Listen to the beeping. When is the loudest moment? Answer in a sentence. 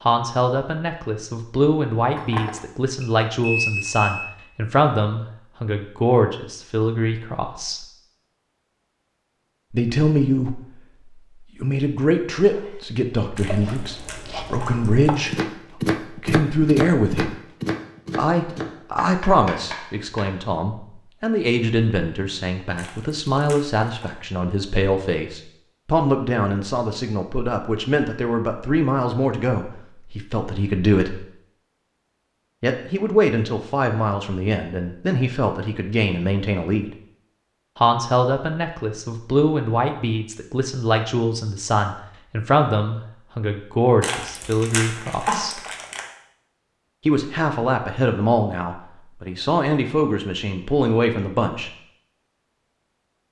The volume of the beeping peaks at 4 seconds.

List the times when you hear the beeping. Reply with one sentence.
You can hear the beeping from 2.1 to 4.2 s.